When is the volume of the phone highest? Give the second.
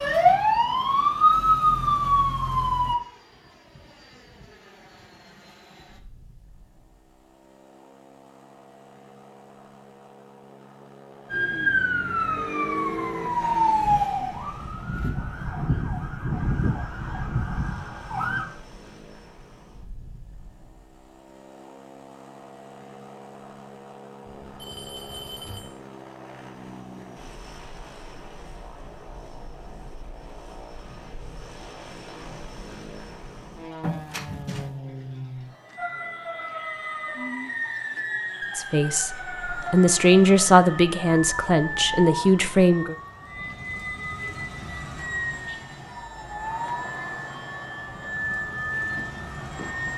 34 s.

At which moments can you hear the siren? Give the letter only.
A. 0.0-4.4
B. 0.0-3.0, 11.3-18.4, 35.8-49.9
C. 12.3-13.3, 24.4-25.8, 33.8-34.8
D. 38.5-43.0
B.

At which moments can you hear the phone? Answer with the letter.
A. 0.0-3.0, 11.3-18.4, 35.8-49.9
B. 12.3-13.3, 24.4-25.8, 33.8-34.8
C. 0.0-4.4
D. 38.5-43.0
B.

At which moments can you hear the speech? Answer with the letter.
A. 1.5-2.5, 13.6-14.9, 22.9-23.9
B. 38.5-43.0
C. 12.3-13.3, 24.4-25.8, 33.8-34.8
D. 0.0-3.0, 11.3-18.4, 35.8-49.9
B.